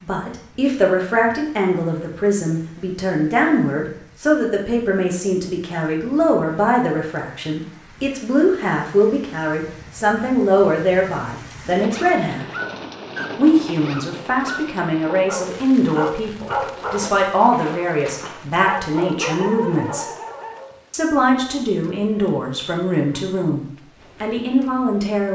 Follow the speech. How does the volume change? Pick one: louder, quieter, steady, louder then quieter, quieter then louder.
steady.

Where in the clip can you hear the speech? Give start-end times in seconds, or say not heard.
0.0-12.4, 13.3-20.1, 20.9-25.3.